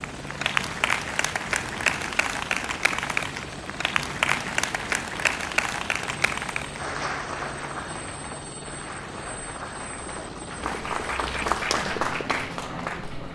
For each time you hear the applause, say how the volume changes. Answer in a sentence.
The applause can be heard from 0.0 to 13.3 s, getting quieter then louder.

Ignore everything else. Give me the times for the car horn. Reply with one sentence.
You can't hear the car horn here.